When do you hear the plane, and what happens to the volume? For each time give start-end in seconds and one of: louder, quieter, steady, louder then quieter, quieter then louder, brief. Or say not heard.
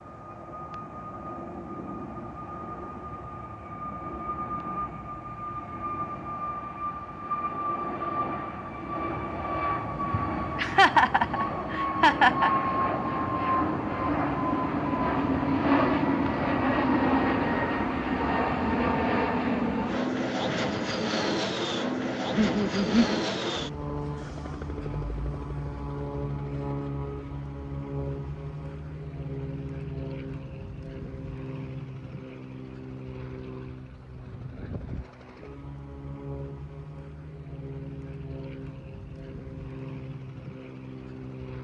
0.0-41.5 louder then quieter.